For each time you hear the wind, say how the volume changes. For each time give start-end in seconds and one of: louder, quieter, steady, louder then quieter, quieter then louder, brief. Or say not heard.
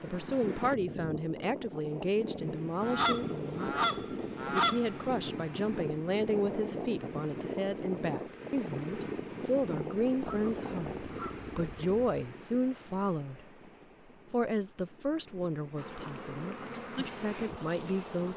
0.0-18.3 quieter.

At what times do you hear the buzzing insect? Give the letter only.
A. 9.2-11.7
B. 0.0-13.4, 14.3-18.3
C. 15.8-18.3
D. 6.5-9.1
C.